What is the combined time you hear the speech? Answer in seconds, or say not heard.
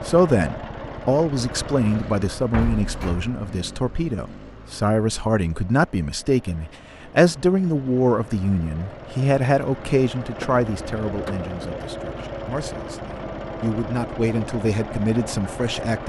16 s.